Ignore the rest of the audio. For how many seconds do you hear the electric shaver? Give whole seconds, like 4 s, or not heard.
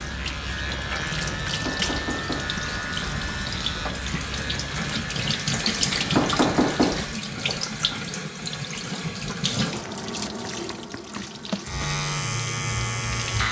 9 s.